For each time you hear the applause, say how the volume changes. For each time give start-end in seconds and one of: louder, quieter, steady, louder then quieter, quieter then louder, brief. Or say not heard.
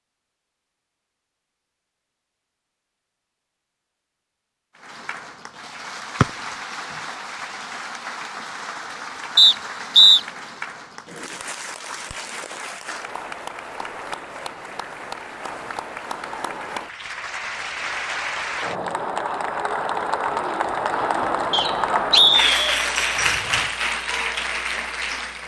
4.8-25.4 louder.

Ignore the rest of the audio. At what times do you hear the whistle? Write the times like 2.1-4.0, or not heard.
9.3-10.2, 21.5-22.8.